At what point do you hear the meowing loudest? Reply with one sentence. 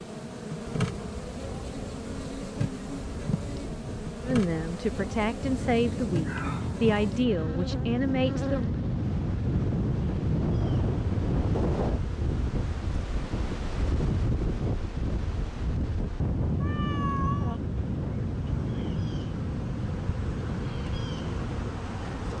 The volume of the meowing peaks at 17 seconds.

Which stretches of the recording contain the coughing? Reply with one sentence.
The coughing can't be heard in this clip.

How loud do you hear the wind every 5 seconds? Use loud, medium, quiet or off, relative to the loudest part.
quiet, loud, loud, loud, medium.